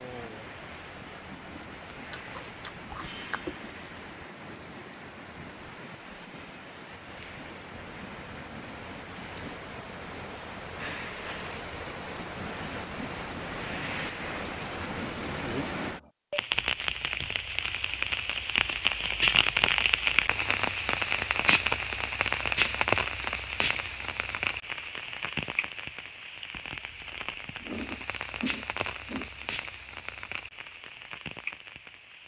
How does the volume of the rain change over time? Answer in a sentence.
The volume of the rain goes up, then down.